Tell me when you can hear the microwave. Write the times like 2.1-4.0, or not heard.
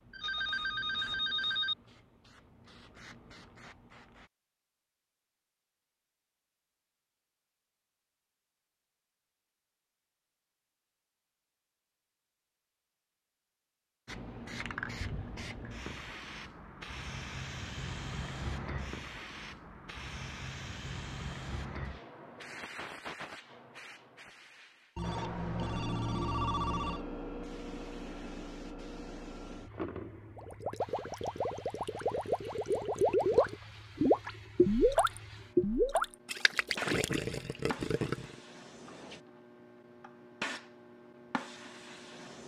not heard.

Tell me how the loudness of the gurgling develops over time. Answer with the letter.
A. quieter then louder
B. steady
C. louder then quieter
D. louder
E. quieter
C.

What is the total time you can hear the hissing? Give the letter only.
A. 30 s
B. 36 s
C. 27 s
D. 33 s
D.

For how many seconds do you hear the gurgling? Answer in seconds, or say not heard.
8 s.